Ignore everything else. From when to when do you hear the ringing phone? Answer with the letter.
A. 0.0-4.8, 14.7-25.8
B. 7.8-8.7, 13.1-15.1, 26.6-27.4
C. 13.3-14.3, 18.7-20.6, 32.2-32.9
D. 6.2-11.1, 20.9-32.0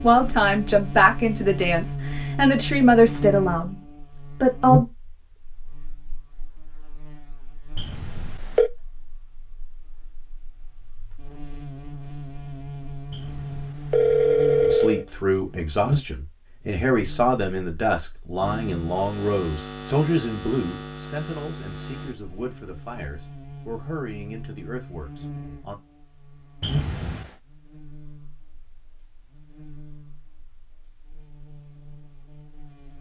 B.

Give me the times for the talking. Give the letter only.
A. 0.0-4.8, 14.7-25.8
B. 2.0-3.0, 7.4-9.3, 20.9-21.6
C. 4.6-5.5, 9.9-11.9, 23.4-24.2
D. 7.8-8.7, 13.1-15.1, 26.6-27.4
A.